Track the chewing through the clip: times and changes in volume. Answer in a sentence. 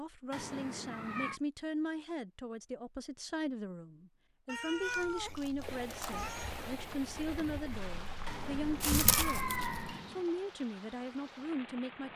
The chewing can be heard from 4.8 to 9.9 s, getting louder.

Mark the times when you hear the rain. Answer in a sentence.
The rain can be heard from 5.6 to 12.1 s.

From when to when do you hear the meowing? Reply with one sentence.
You can hear the meowing from 0.3 to 1.4 s, from 4.5 to 6.5 s and from 8.2 to 10.2 s.